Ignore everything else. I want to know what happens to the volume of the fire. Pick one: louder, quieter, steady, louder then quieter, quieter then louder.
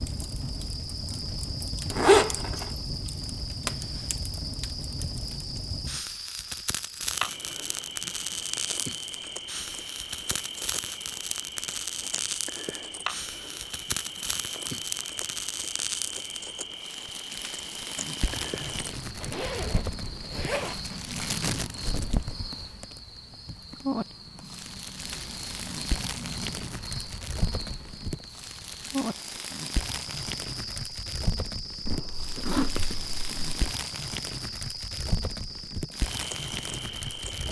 steady.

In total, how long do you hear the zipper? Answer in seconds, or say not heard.
5 s.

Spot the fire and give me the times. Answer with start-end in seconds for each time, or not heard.
0.0-37.4.